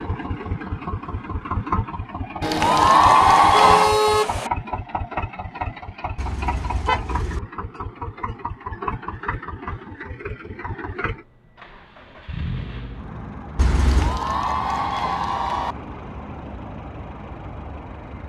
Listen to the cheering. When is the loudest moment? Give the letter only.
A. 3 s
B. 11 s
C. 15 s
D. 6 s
A.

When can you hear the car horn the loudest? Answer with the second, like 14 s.
4 s.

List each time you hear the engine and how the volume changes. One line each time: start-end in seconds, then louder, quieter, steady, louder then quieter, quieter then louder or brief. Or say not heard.
0.0-18.2 quieter.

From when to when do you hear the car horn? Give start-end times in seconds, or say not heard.
2.6-4.5, 6.2-7.4, 13.6-14.2.